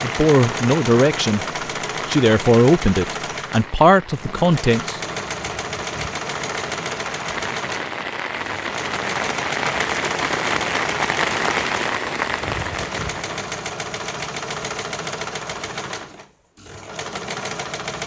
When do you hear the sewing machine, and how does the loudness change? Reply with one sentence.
The sewing machine can be heard from 0.0 to 18.0 s, at a steady volume.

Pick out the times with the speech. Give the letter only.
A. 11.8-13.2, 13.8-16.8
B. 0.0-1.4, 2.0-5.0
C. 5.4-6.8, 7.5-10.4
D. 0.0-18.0
B.